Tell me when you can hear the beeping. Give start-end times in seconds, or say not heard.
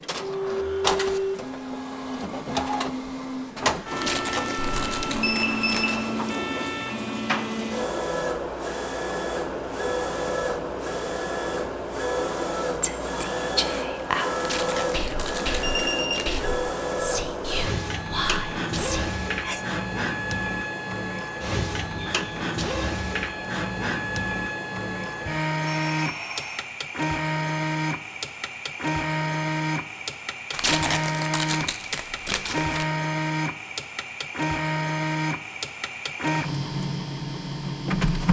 4.6-6.0, 15.6-16.2, 25.6-26.6.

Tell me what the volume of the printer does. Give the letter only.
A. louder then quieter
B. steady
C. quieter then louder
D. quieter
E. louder
B.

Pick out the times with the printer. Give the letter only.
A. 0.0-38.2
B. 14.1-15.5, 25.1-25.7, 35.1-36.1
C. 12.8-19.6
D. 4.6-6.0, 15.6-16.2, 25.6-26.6
A.